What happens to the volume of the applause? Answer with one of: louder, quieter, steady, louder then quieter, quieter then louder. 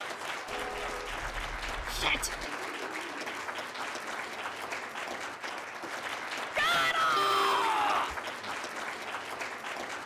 steady.